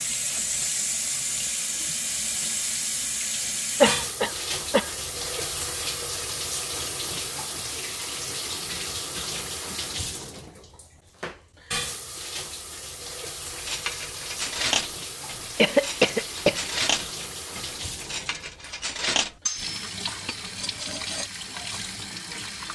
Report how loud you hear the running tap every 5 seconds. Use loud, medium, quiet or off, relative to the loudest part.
loud, loud, medium, medium, medium.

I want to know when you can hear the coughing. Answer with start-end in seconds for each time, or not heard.
3.8-4.9, 15.6-16.6.